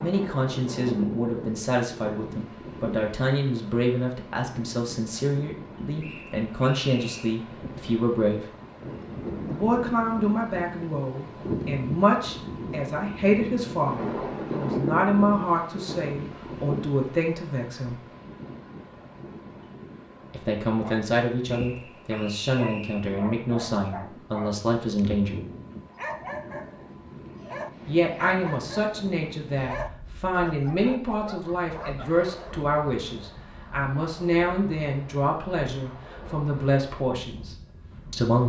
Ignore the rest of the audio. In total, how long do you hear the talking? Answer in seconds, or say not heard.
33 s.